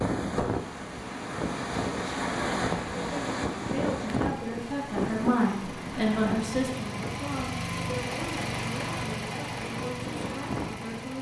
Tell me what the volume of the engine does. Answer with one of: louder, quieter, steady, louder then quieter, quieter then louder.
louder.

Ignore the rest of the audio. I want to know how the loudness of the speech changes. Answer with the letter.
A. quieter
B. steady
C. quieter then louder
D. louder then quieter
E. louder
D.